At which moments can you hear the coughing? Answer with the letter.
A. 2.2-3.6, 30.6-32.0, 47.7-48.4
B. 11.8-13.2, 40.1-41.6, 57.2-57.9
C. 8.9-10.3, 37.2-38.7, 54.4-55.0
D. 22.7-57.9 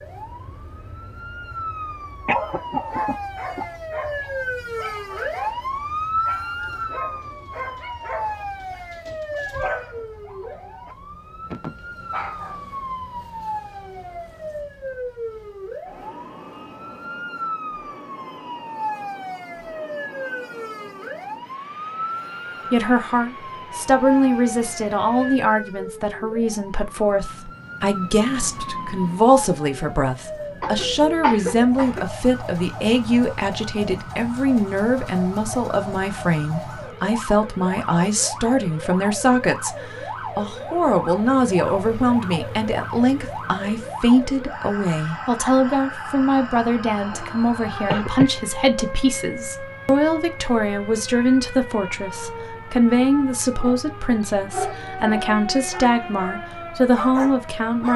A.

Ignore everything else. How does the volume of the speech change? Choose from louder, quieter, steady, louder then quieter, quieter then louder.
steady.